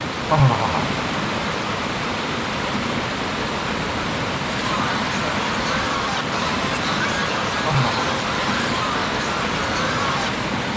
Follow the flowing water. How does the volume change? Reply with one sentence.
The loudness of the flowing water stays about the same.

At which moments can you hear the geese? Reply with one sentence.
The geese can be heard from 4.5 to 10.3 s.